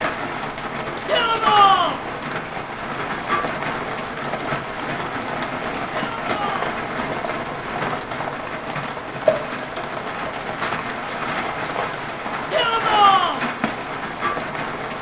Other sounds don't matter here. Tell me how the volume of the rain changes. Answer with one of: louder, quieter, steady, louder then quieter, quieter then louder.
steady.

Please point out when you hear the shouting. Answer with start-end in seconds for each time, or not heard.
1.1-1.9, 6.0-6.7, 12.5-13.4.